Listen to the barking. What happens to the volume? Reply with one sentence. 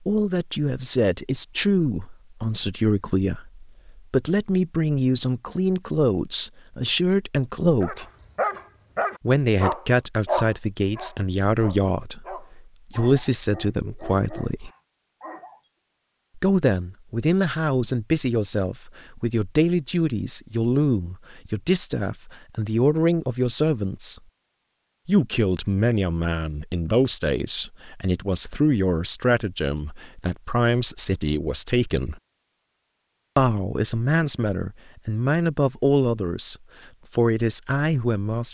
The volume of the barking goes down.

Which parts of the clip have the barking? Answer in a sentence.
The barking can be heard from 7.8 to 15.6 s.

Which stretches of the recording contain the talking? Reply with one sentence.
The talking can be heard from 0.1 to 8.1 s, from 9.2 to 14.7 s, from 16.4 to 24.2 s, from 25.1 to 32.2 s and from 33.4 to 38.4 s.